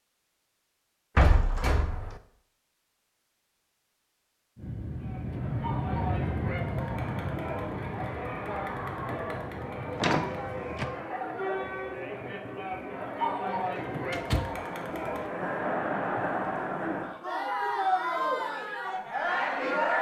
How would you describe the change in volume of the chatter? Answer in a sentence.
The loudness of the chatter goes up.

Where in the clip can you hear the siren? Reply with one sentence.
You can't hear the siren here.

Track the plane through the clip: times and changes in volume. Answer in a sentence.
You can hear the plane from 4.5 to 10.9 s, getting quieter.